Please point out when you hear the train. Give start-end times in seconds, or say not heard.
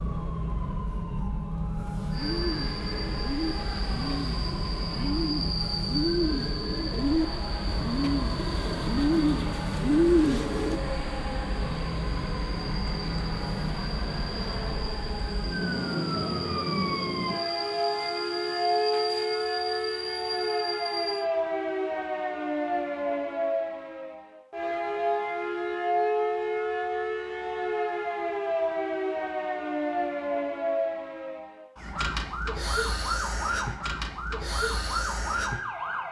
2.1-21.3.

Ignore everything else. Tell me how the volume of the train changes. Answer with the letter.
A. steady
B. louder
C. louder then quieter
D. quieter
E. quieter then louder
A.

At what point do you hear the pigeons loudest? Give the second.
10 s.